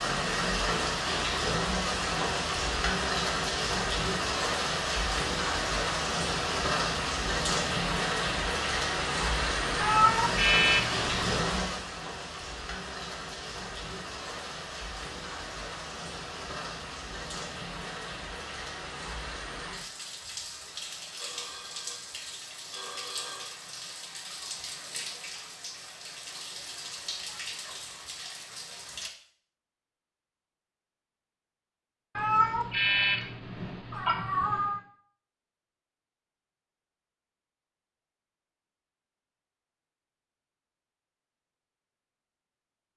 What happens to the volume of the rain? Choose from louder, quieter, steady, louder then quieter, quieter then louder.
quieter.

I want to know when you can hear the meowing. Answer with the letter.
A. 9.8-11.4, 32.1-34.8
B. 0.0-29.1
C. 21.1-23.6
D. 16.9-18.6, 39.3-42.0
A.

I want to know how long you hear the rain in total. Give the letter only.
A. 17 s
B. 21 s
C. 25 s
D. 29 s
D.